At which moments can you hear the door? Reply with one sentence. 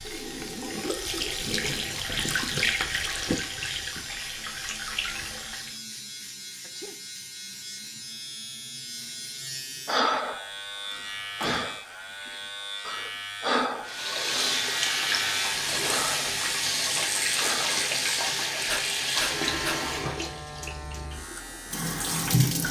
The door can be heard from 10.9 to 11.8 s.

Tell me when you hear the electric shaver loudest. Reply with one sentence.
The volume of the electric shaver peaks at 15 seconds.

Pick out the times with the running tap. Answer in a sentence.
You can hear the running tap from 0.0 to 5.8 s and from 13.8 to 22.6 s.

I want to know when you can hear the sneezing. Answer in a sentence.
You can hear the sneezing from 6.6 to 7.0 s.